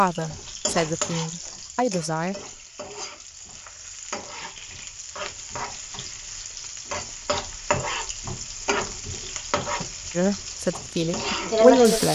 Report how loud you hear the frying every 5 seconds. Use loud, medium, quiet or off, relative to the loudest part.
medium, medium, loud.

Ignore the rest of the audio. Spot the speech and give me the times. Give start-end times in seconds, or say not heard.
0.0-2.4, 10.2-12.0.